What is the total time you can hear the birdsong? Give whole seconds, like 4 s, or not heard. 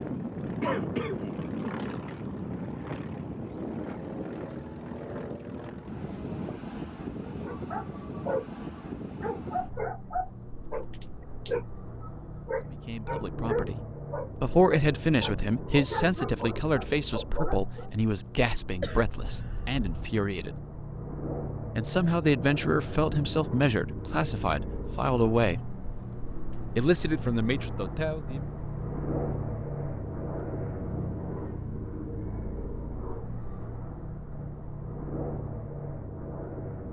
not heard.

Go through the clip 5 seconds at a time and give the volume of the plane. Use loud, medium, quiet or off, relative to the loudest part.
loud, loud, medium, medium, loud, loud, loud, loud.